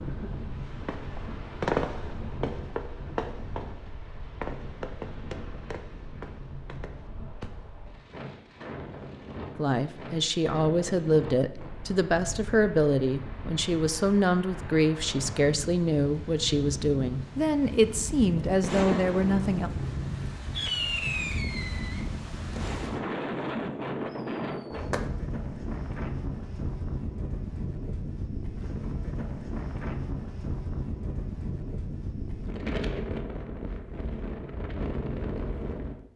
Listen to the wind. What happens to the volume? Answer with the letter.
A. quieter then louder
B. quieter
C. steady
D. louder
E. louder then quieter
D.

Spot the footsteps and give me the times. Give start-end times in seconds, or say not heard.
not heard.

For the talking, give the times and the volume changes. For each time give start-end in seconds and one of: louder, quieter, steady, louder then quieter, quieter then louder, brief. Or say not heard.
9.6-19.7 steady.